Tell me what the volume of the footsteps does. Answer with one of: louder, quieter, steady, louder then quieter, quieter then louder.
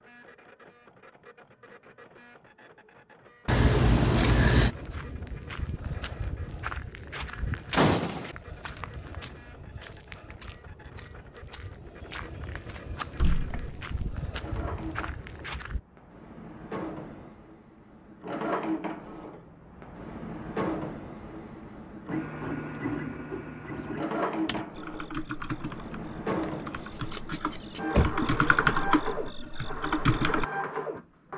quieter then louder.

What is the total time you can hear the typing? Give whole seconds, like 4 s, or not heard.
6 s.